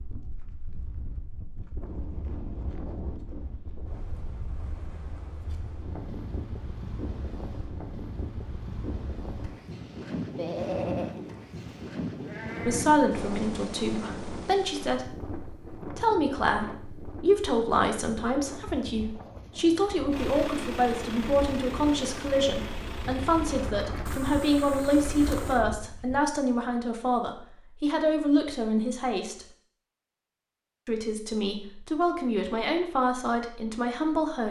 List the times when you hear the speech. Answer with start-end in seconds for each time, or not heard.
12.7-29.4, 30.9-34.4.